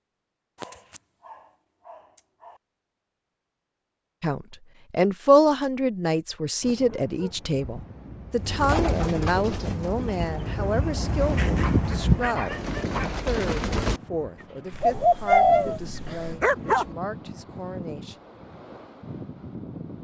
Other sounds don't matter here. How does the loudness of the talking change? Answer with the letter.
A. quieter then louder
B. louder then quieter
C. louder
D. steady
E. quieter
E.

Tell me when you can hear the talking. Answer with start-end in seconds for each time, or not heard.
4.2-18.1.